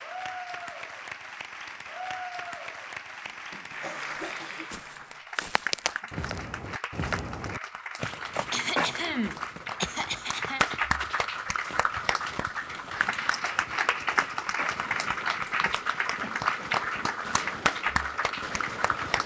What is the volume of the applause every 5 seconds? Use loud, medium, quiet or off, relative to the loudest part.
medium, medium, loud, loud.